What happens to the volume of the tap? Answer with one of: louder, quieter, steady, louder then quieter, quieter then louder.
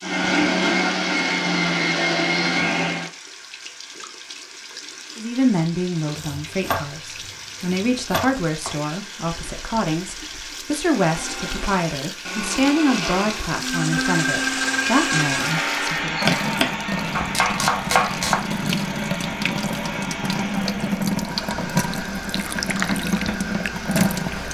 louder.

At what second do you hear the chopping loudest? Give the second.
18 s.